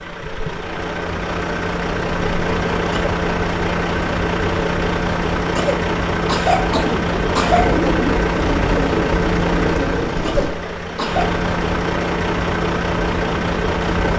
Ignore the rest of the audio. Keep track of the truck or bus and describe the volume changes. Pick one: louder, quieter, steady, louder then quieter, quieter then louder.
steady.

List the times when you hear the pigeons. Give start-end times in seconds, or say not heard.
6.8-10.5.